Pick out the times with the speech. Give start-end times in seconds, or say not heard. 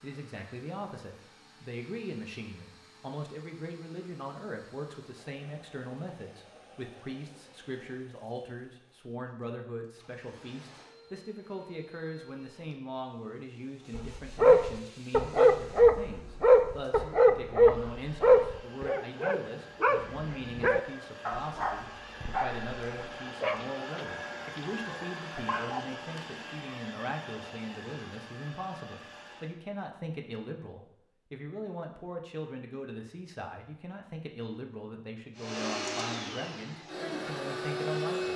0.0-38.3.